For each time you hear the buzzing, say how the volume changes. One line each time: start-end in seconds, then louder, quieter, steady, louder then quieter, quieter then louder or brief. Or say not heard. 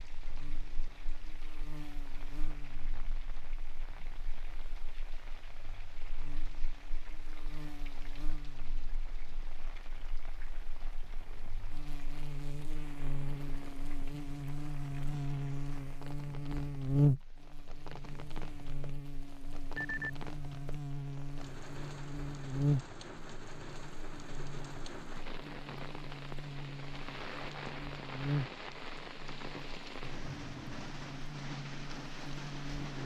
0.0-33.0 louder then quieter.